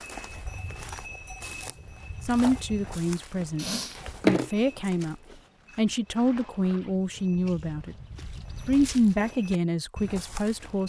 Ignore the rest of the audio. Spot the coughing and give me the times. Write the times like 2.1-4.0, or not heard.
3.5-4.5.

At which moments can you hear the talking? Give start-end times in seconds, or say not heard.
2.2-5.2, 5.8-8.0, 8.7-10.8.